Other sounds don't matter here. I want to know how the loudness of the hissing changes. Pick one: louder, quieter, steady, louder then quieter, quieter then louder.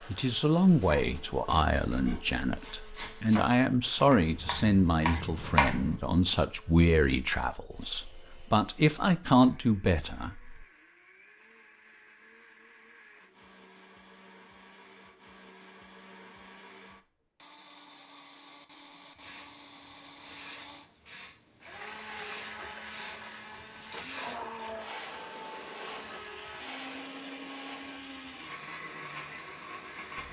louder then quieter.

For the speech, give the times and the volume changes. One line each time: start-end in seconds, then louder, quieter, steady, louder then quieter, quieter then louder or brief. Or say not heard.
0.1-10.7 steady.